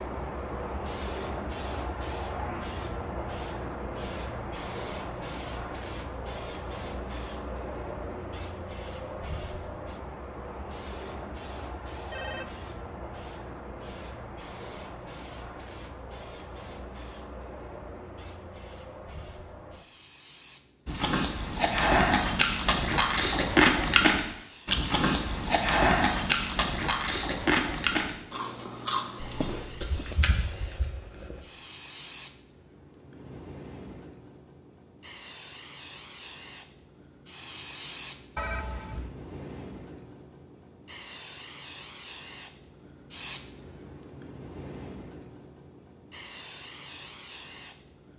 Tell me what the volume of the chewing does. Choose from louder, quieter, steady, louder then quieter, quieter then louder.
quieter.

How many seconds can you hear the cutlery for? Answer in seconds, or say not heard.
not heard.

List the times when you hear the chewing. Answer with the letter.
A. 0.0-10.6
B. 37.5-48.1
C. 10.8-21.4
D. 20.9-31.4
D.